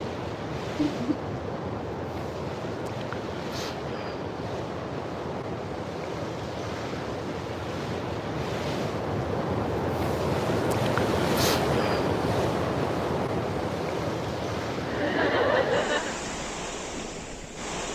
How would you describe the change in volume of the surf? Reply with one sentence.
The loudness of the surf goes up, then down.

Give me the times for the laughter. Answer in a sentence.
You can hear the laughter from 0.9 to 1.4 s and from 14.8 to 16.2 s.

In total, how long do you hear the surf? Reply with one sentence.
You can hear the surf for 18 seconds altogether.